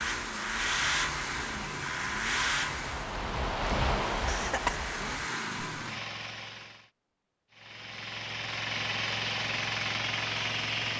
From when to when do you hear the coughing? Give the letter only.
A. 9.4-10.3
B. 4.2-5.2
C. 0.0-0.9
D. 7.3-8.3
B.